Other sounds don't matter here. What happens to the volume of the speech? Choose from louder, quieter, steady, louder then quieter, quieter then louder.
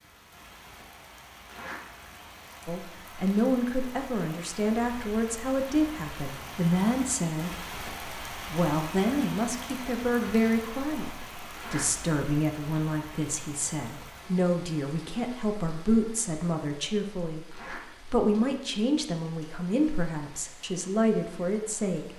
steady.